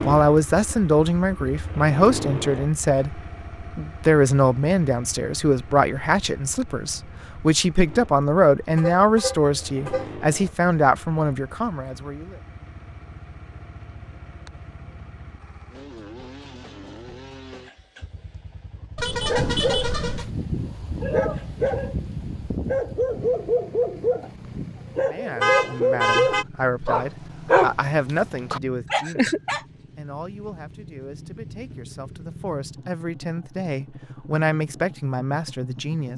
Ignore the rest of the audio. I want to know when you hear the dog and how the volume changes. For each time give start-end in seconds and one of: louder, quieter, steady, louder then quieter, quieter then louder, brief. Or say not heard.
19.2-29.6 louder.